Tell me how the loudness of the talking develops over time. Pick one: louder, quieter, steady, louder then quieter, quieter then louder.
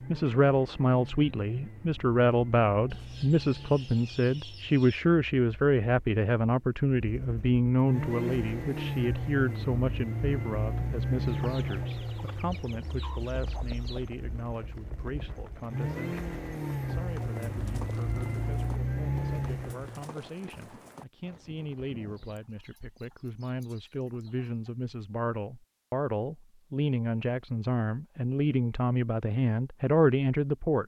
quieter then louder.